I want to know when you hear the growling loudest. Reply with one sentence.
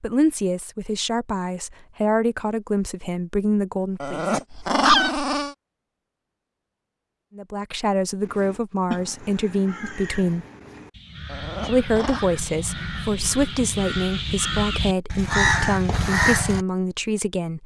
The volume of the growling peaks at 5 seconds.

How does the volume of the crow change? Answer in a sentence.
The volume of the crow goes down, then up.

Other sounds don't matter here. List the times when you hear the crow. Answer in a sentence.
You can hear the crow from 8.2 to 16.6 s.